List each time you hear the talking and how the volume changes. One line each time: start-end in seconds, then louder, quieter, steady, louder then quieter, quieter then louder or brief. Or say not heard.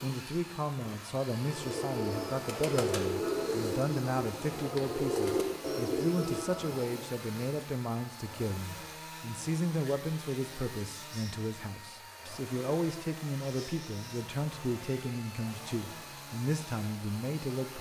0.0-17.7 steady.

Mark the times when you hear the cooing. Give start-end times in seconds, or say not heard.
1.4-7.0.